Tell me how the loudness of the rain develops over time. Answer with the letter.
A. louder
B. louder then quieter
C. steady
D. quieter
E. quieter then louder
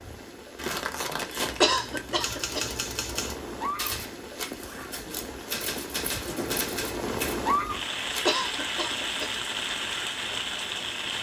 A.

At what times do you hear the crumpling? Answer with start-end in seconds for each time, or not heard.
0.6-2.2.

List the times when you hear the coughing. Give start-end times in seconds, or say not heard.
1.6-2.7, 8.2-9.3.